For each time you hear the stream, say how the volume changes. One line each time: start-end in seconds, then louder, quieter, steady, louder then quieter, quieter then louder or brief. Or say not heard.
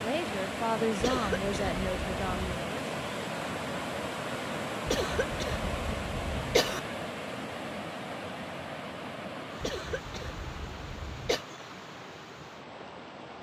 0.0-13.3 quieter.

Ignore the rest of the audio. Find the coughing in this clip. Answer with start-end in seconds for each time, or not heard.
1.0-2.4, 4.8-6.8, 9.6-11.4.